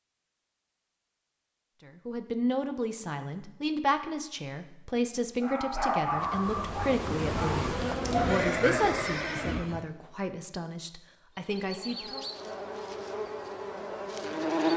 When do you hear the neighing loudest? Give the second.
9 s.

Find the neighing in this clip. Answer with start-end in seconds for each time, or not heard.
8.0-9.8.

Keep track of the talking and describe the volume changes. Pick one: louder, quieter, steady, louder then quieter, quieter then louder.
quieter.